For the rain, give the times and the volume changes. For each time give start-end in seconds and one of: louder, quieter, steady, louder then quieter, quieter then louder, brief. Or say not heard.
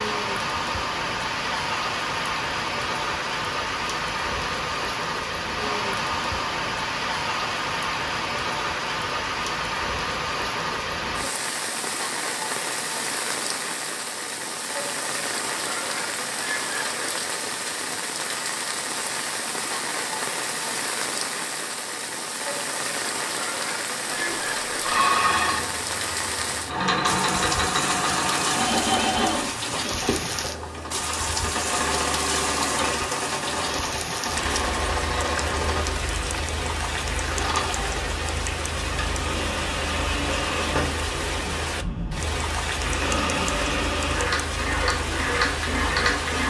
0.0-46.4 steady.